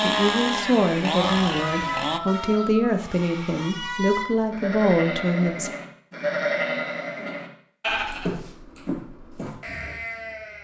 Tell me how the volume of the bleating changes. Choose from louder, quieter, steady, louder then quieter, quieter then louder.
louder then quieter.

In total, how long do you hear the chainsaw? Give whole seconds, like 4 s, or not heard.
2 s.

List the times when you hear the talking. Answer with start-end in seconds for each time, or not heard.
0.0-5.7.